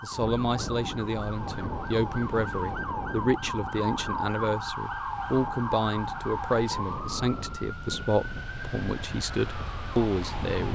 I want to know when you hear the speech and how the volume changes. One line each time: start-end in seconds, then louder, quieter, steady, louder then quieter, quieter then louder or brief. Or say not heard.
0.0-10.7 steady.